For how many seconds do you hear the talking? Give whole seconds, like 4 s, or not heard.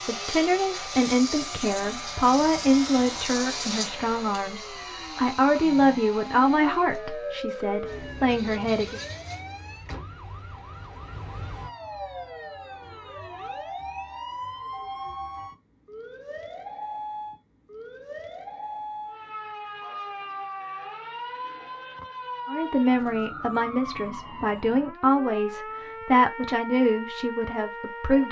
15 s.